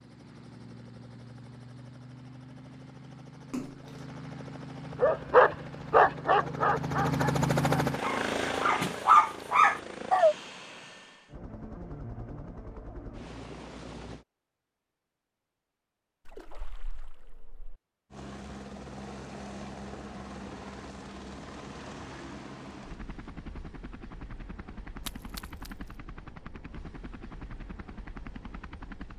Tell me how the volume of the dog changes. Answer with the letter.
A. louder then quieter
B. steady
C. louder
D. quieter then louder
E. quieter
D.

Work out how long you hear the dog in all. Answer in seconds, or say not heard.
5 s.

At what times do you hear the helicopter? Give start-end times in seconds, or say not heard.
0.0-14.2, 18.1-29.1.